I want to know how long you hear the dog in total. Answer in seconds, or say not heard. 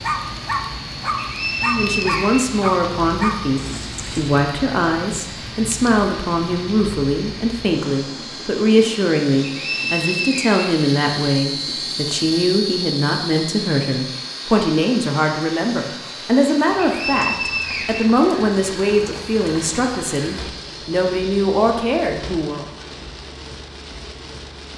4 s.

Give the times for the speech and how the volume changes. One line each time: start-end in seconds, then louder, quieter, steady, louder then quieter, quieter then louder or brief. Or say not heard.
1.6-22.6 steady.